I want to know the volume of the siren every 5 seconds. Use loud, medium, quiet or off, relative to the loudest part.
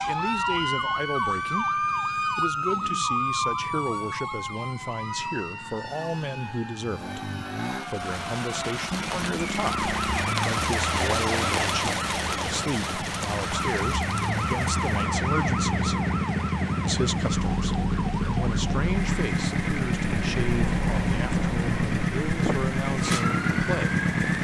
loud, medium, loud, medium, medium.